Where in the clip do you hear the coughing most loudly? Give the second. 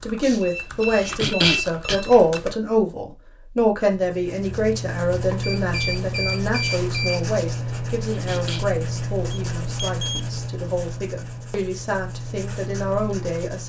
1 s.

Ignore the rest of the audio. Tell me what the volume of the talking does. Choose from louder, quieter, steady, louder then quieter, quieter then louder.
quieter.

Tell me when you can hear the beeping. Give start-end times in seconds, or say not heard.
0.4-2.4, 5.4-7.2, 9.3-10.2.